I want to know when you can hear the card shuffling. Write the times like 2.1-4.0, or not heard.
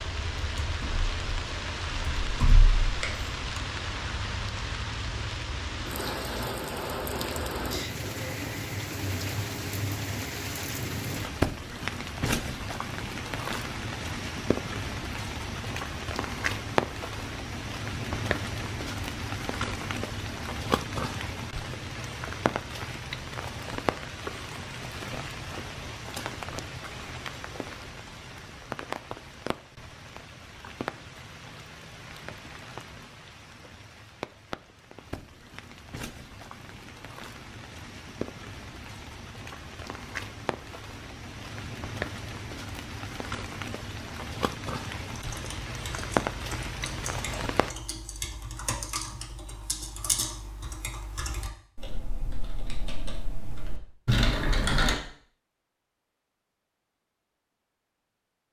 not heard.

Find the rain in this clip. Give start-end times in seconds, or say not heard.
0.0-47.7.